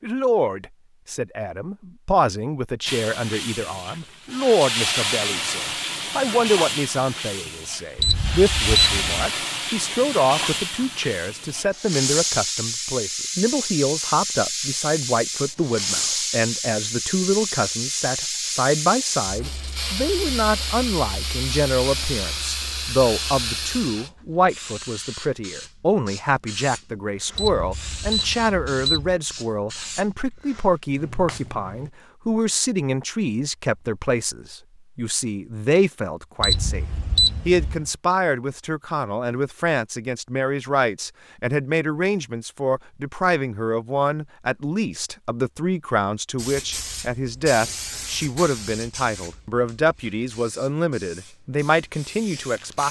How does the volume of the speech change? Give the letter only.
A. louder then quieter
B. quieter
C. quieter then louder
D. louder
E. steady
E.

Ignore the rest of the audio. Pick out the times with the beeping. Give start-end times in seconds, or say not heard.
8.0-9.3, 27.4-29.2, 36.4-38.0.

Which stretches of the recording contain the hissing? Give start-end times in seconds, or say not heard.
2.9-31.9, 46.4-52.8.